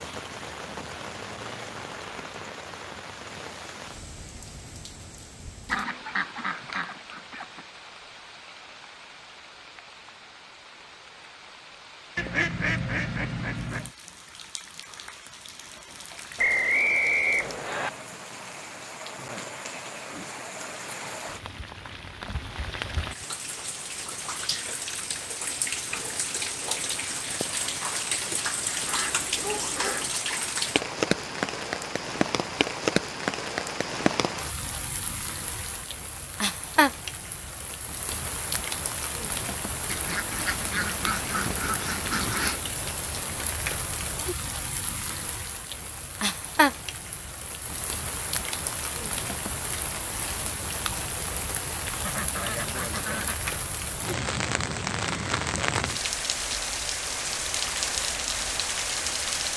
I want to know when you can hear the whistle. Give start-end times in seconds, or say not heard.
16.4-17.9.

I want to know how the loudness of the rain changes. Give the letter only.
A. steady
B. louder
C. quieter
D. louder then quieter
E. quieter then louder
B.